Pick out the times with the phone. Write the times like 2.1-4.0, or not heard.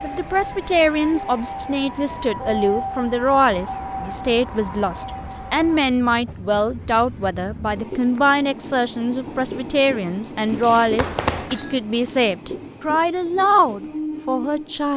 10.4-11.8.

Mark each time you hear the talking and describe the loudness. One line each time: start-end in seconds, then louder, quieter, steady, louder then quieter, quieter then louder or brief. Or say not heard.
0.0-14.9 steady.